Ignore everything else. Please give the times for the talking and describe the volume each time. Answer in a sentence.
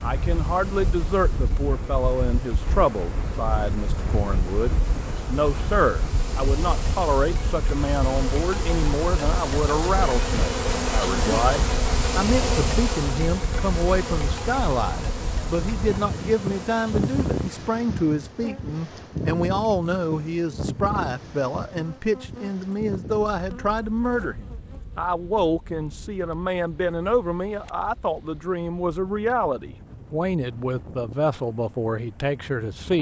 You can hear the talking from 0.0 to 32.9 s, at a steady volume.